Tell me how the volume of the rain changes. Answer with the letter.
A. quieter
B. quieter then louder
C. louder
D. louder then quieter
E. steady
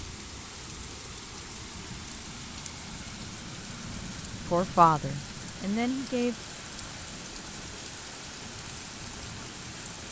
E.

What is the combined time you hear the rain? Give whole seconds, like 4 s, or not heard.
10 s.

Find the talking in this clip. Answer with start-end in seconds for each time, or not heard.
4.5-6.3.